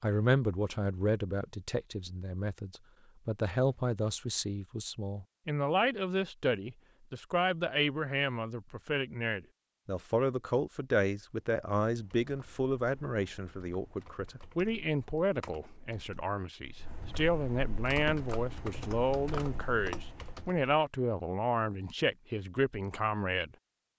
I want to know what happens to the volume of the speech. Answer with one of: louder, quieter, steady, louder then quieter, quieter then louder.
steady.